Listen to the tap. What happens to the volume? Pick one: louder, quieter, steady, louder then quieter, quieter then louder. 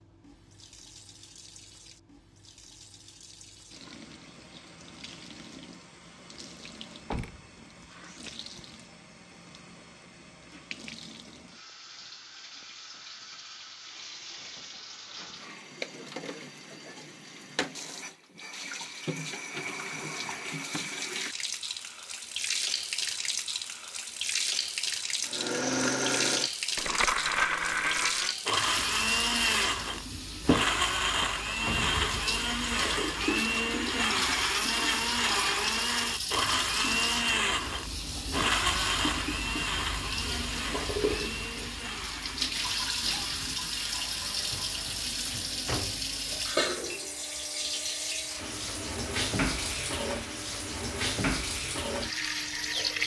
louder.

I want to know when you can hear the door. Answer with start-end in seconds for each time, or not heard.
7.0-8.6, 31.6-32.2, 44.5-46.0.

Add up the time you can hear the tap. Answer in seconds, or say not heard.
53 s.